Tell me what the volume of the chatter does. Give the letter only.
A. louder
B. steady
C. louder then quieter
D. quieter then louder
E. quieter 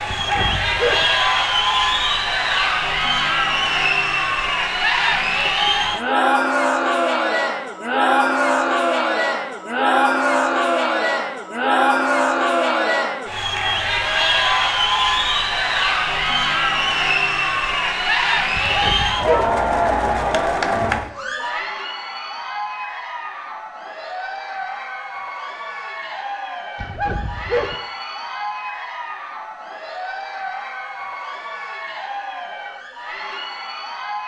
E.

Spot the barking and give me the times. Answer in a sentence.
You can hear the barking from 0.1 to 1.1 s, from 18.6 to 19.5 s and from 26.8 to 27.8 s.